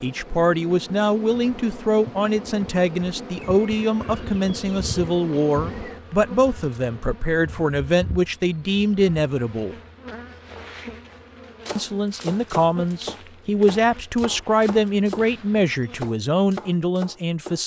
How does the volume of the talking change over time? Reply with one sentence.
The volume of the talking stays about the same.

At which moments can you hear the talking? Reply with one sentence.
The talking can be heard from 0.0 to 9.8 s and from 11.8 to 17.6 s.